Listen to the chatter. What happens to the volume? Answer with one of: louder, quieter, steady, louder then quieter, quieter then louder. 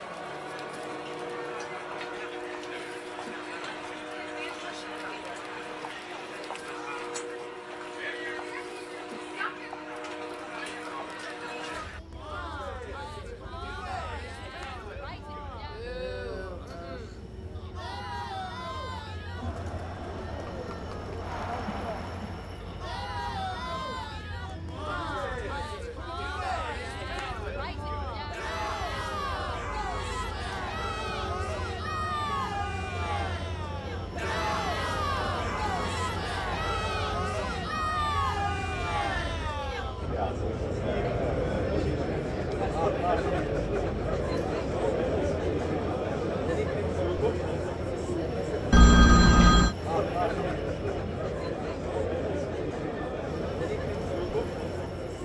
louder.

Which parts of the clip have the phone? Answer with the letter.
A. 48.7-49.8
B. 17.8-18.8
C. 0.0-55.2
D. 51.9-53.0
A.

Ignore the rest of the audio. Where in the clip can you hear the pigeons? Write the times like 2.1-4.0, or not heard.
not heard.